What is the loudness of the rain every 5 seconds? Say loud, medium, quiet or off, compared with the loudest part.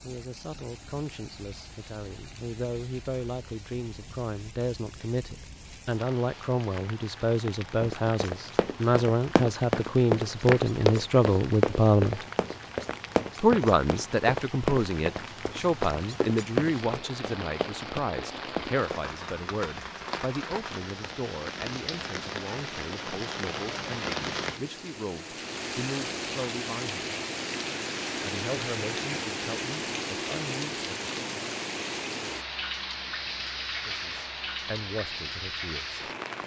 quiet, medium, medium, medium, loud, loud, loud, loud.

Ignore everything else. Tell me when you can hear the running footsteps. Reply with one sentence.
You can hear the running footsteps from 7.8 to 19.1 s.